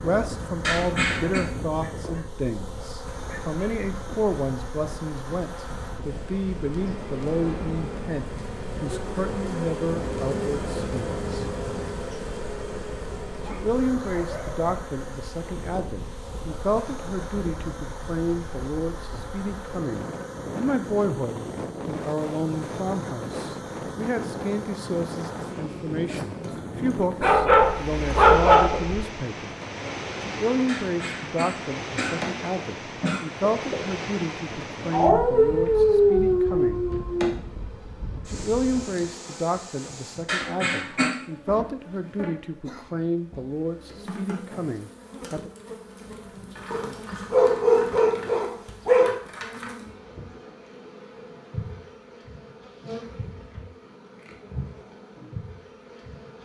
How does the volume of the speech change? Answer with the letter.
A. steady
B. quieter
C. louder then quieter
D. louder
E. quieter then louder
A.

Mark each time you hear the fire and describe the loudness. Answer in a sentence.
The fire can't be heard in this clip.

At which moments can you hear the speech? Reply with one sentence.
You can hear the speech from 0.0 to 11.4 s, from 13.4 to 29.6 s, from 30.2 to 36.9 s and from 38.3 to 45.5 s.